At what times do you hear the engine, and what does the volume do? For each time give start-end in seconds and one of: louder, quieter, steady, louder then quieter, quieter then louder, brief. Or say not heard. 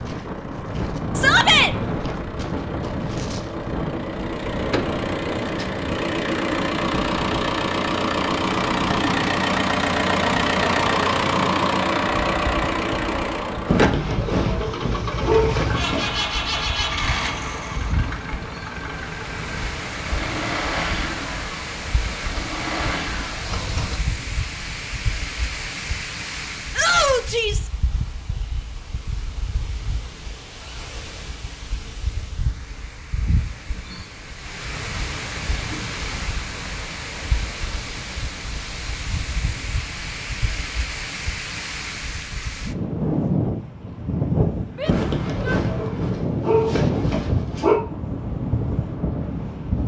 0.0-24.0 louder then quieter.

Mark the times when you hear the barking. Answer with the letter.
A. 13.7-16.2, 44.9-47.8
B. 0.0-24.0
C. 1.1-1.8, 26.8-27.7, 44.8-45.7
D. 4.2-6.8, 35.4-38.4
A.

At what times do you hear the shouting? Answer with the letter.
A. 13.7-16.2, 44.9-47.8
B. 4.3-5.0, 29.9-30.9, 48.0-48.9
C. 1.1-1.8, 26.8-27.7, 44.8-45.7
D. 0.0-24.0
C.